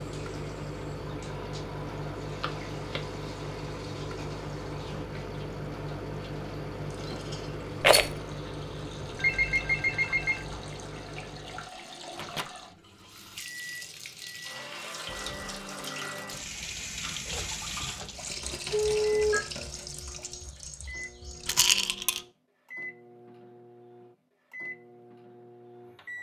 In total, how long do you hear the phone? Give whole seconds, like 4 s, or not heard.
3 s.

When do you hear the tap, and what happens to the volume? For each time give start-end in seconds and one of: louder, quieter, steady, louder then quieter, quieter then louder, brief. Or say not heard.
0.0-21.6 louder.